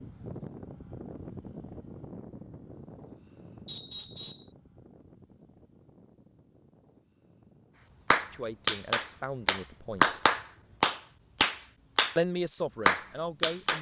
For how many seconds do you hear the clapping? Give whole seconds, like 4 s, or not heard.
5 s.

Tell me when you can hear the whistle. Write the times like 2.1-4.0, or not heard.
3.6-4.5.